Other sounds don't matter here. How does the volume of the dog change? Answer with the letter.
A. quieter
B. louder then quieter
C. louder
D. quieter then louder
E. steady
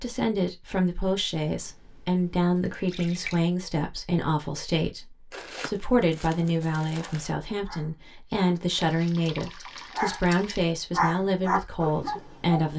C.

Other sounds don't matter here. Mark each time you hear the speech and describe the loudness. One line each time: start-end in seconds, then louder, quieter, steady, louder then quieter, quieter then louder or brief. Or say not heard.
0.0-12.7 steady.